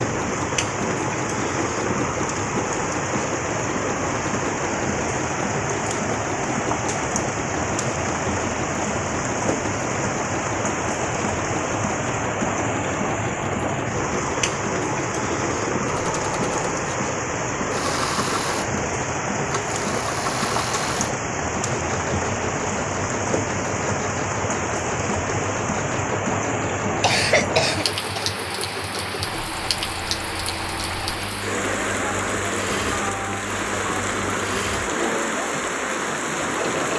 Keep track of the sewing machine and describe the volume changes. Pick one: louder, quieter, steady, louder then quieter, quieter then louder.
steady.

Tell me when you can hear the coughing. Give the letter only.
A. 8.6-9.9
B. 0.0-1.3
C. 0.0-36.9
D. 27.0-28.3
D.